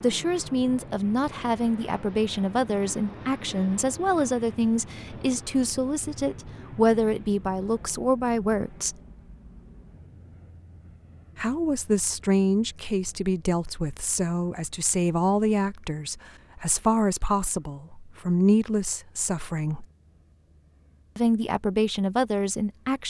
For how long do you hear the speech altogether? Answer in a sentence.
The speech can be heard for 19 seconds in total.